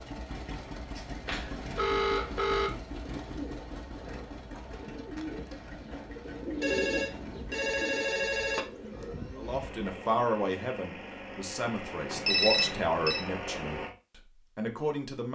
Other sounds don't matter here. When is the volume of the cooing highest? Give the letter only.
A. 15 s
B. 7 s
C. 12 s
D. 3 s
B.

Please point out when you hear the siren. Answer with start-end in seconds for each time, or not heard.
not heard.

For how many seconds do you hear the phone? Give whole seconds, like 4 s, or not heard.
5 s.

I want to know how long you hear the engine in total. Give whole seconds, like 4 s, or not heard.
14 s.